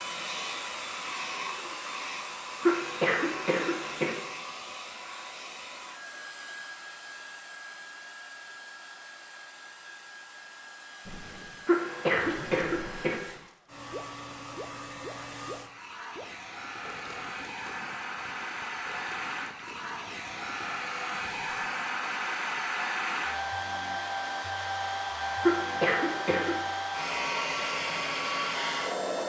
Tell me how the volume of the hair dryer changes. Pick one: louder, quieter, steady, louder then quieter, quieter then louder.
quieter then louder.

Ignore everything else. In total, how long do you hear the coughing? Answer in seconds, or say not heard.
4 s.